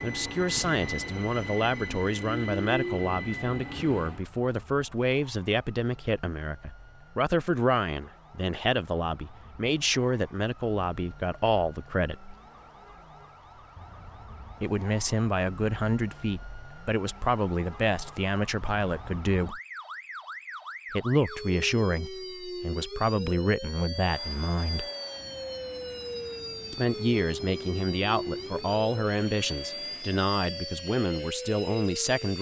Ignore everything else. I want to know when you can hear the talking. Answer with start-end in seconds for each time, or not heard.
0.0-12.3, 14.6-19.6, 20.9-24.9, 26.7-32.3.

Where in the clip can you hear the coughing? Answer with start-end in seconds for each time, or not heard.
not heard.